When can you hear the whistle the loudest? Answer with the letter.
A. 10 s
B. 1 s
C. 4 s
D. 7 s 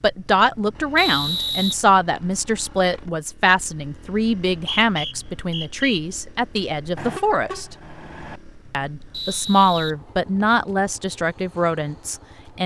B.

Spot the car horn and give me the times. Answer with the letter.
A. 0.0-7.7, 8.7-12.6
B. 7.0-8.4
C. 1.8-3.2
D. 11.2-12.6
B.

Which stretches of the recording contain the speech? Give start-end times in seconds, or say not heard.
0.0-7.7, 8.7-12.6.